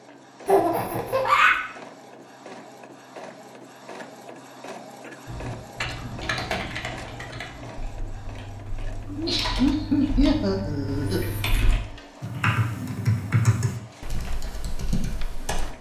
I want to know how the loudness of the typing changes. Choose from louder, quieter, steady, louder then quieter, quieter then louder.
quieter then louder.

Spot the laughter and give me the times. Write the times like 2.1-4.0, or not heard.
0.5-1.6, 9.1-11.3.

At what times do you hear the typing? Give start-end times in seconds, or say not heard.
5.2-15.7.